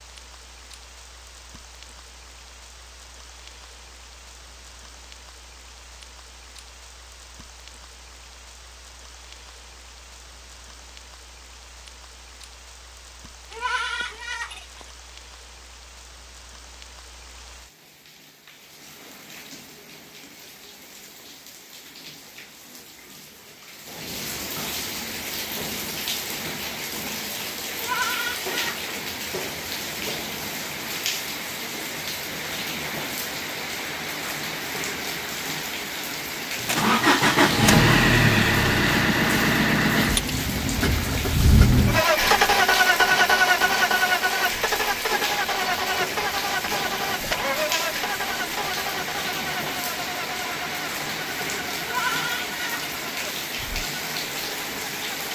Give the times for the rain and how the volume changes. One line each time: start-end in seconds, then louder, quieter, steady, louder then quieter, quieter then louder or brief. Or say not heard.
0.0-55.2 louder.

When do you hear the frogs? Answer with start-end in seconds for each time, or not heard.
not heard.